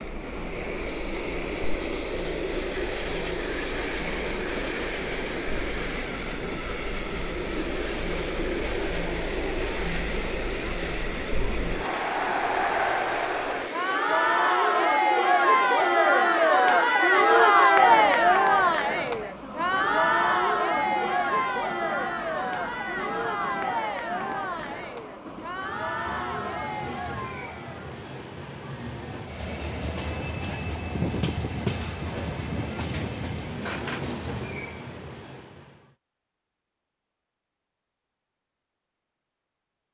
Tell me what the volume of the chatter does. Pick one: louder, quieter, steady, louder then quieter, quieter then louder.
louder then quieter.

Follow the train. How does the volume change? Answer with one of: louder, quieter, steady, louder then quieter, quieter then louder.
quieter then louder.